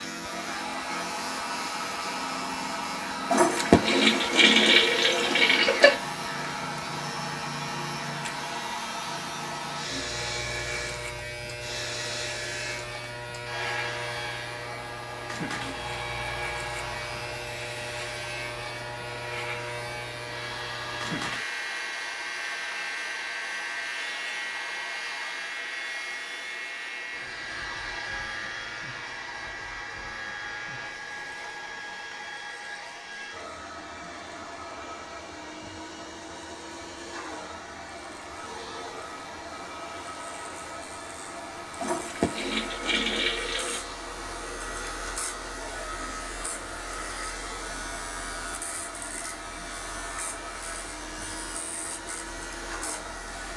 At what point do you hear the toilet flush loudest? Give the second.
4 s.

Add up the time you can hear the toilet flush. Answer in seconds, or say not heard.
5 s.